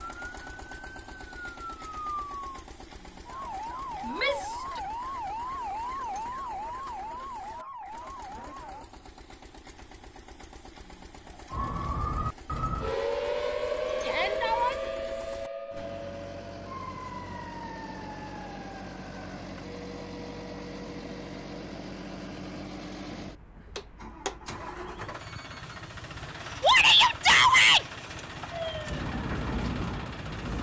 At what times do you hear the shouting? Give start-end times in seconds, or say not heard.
4.0-4.8, 14.0-14.8, 26.6-27.9.